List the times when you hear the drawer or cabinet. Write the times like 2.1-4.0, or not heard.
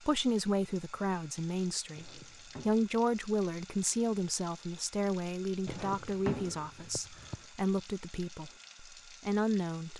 1.9-2.9, 5.7-7.5.